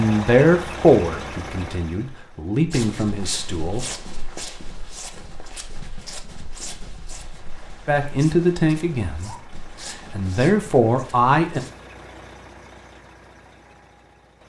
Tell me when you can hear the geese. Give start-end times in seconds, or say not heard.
not heard.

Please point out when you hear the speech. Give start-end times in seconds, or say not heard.
0.0-3.9, 7.8-11.6.